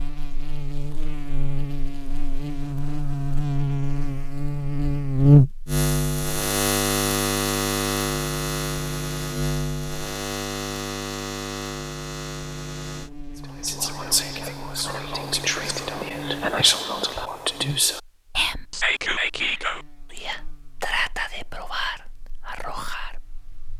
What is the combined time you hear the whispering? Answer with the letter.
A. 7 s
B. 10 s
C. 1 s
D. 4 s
B.